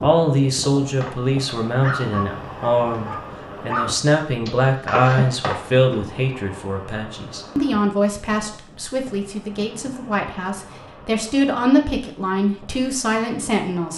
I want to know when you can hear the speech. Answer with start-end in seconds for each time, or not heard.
0.0-13.9.